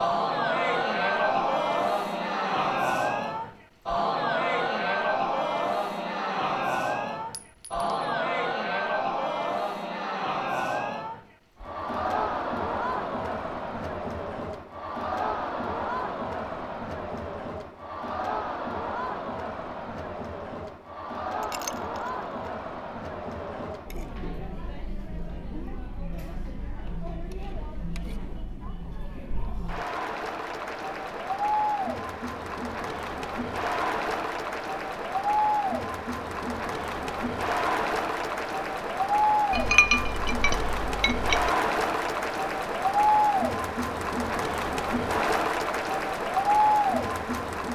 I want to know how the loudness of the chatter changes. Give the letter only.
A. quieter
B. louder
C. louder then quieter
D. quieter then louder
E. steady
D.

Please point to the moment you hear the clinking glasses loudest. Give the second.
40 s.